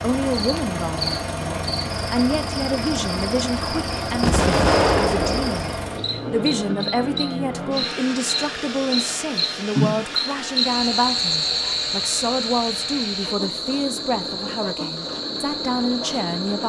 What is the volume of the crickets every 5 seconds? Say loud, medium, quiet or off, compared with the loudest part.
medium, loud, loud, medium.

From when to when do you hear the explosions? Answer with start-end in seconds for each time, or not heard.
4.2-5.8.